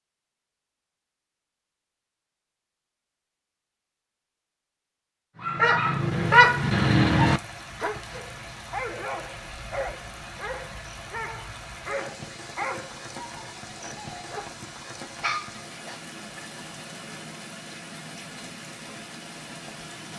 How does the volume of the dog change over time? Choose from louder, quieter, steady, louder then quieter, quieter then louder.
quieter.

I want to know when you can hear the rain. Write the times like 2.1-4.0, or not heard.
6.0-20.1.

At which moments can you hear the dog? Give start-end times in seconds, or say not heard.
5.4-16.0.